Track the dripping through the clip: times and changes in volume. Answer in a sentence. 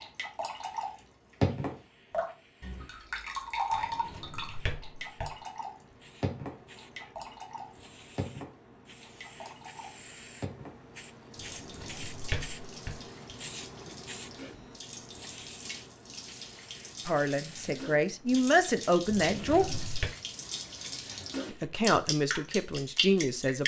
The dripping can be heard from 0.0 to 23.6 s, getting quieter then louder.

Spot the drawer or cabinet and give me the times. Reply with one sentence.
The drawer or cabinet can be heard from 3.7 to 5.3 s, from 11.3 to 13.0 s and from 19.2 to 20.1 s.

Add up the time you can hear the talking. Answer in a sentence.
You can hear the talking for 5 seconds altogether.